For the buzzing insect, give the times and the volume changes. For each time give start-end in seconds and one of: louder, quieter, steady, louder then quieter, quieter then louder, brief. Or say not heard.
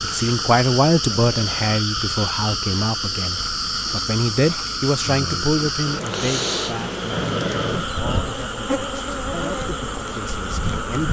0.0-11.0 steady.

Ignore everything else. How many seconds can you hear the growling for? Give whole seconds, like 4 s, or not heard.
2 s.